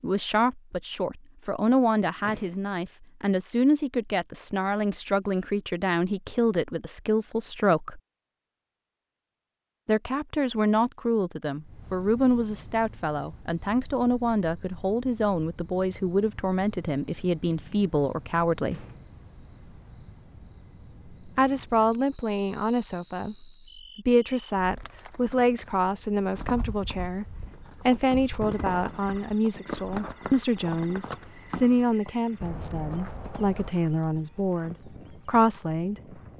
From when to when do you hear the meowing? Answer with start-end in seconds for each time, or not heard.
not heard.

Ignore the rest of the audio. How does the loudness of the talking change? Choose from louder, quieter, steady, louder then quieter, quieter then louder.
steady.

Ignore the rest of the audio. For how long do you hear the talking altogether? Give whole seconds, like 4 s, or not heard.
31 s.